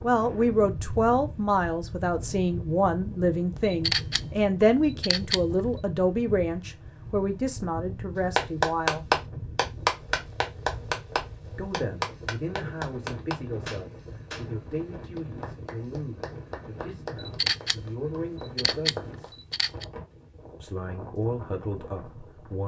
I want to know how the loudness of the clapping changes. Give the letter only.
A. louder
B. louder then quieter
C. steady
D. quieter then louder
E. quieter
E.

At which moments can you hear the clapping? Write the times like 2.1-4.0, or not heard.
8.3-19.8.